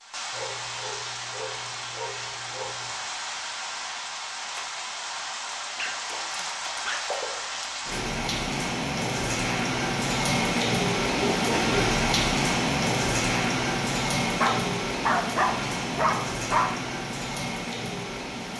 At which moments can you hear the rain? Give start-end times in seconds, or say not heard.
0.0-18.5.